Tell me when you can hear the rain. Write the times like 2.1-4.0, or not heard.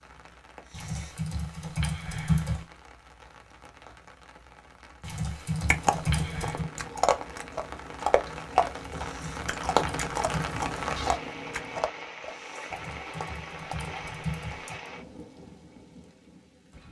0.0-16.8.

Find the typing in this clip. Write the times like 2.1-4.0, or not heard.
0.7-2.6, 5.0-6.7, 8.8-10.7, 12.7-14.9.